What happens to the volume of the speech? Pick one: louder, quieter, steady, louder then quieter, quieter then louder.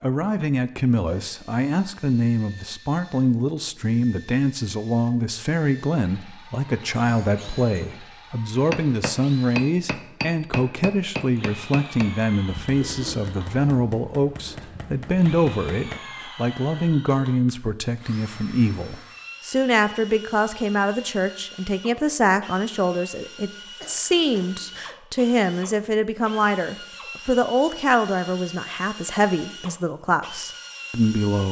steady.